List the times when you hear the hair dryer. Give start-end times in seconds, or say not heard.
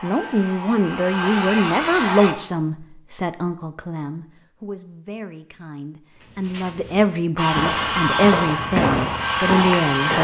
0.0-2.4, 7.3-10.1.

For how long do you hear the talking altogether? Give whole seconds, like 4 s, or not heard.
10 s.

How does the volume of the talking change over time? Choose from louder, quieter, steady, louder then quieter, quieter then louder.
quieter then louder.